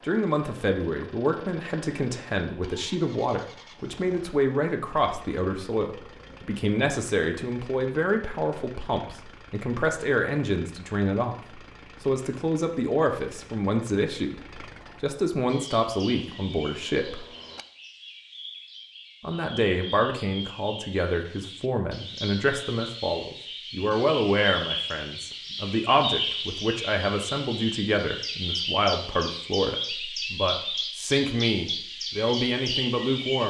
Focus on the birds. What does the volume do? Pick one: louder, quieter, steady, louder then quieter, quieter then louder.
louder.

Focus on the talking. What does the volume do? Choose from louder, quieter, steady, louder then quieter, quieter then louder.
steady.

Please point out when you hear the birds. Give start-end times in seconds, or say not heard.
15.4-33.4.